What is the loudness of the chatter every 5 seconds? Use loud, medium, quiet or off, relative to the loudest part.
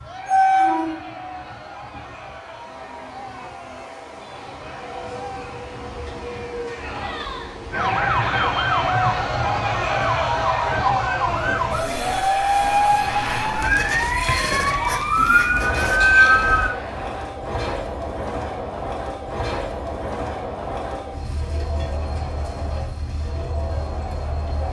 quiet, loud, loud, medium, medium.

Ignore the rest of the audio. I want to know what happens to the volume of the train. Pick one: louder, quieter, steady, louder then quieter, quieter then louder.
quieter.